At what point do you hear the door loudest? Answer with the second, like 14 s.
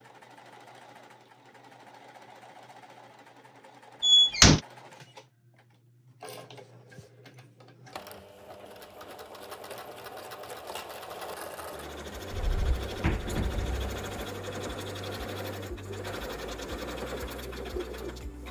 4 s.